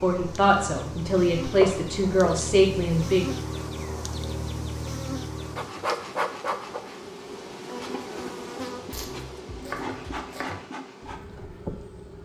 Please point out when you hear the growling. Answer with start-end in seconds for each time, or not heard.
not heard.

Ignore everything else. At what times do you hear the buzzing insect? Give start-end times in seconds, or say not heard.
0.0-12.2.